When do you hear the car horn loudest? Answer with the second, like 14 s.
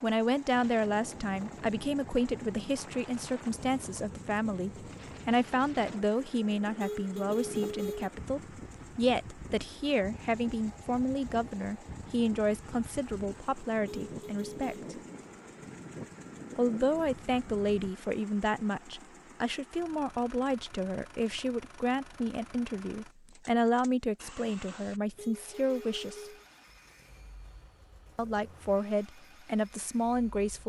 8 s.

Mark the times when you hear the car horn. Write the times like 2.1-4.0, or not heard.
6.8-8.1, 13.8-14.8, 25.1-26.4.